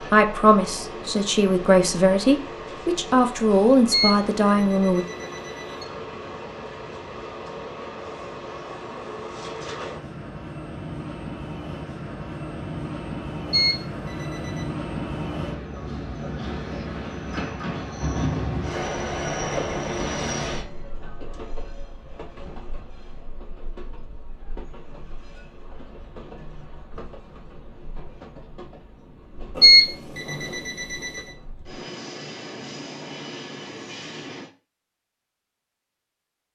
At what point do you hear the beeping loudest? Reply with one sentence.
The volume of the beeping peaks at 30 seconds.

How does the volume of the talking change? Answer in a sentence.
The loudness of the talking stays about the same.